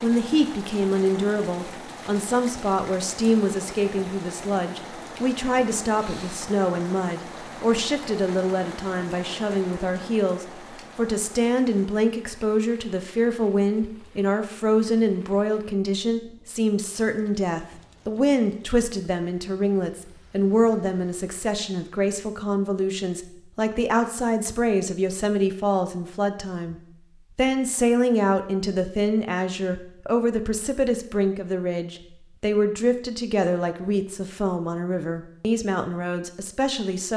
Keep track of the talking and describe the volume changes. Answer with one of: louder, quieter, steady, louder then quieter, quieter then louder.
steady.